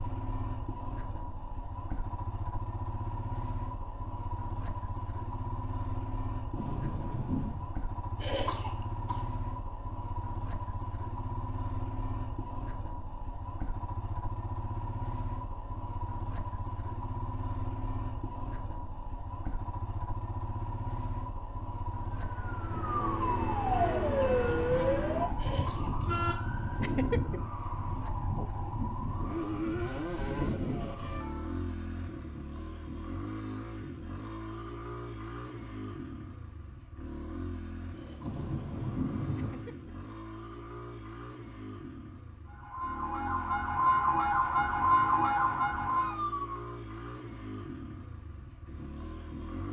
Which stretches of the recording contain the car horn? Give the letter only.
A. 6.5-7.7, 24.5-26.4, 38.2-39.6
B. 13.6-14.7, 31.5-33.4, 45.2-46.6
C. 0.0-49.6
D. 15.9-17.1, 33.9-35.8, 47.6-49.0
A.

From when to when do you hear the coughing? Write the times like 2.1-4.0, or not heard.
8.2-9.3, 25.4-27.4, 38.0-40.0.